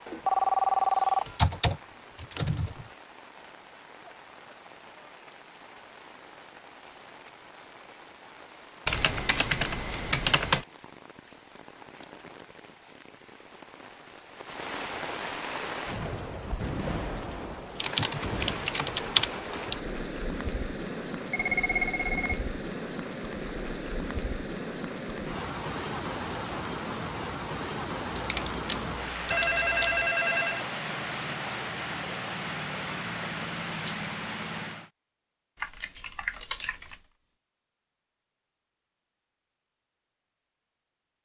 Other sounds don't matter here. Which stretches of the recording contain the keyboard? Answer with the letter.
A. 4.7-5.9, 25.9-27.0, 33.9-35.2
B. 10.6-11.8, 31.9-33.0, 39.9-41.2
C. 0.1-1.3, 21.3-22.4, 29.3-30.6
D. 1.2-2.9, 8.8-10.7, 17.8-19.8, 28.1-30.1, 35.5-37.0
D.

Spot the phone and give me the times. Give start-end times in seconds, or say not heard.
0.1-1.3, 21.3-22.4, 29.3-30.6.